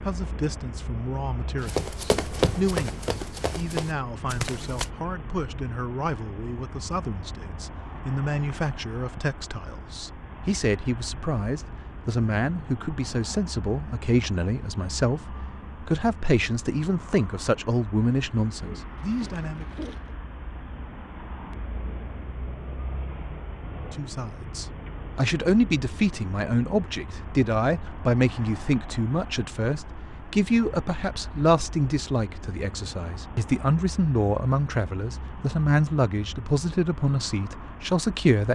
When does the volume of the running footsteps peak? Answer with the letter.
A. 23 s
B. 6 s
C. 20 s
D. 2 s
D.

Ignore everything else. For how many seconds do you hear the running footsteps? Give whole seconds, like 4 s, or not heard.
3 s.